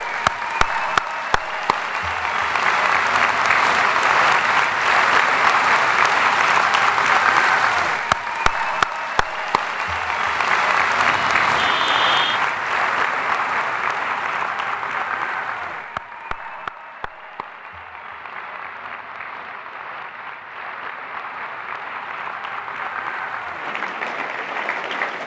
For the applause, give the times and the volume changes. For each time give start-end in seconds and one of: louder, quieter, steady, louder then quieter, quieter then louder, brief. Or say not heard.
0.0-25.2 quieter.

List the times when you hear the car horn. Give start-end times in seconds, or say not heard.
11.1-12.4.